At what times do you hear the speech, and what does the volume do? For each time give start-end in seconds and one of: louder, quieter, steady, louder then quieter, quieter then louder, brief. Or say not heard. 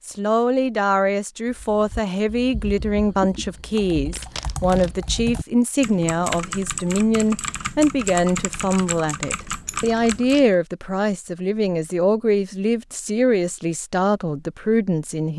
0.1-15.3 steady.